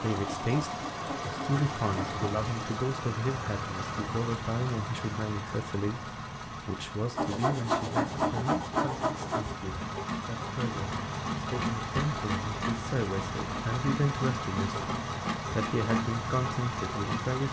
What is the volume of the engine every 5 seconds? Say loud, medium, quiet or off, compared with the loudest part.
loud, medium, loud, loud.